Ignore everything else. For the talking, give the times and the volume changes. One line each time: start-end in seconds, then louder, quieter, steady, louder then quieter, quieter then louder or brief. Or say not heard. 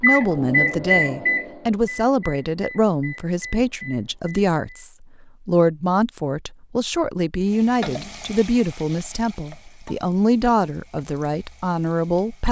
0.0-12.4 steady.